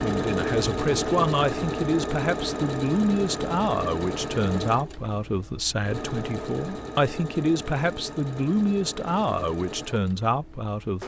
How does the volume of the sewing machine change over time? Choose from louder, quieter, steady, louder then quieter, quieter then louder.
quieter.